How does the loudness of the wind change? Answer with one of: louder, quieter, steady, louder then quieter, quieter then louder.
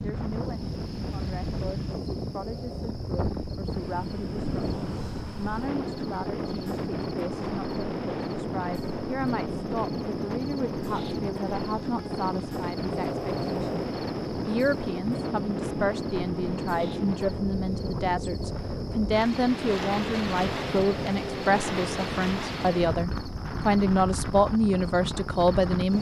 steady.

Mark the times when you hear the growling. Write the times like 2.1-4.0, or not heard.
2.4-3.0, 12.8-14.0, 20.4-21.6.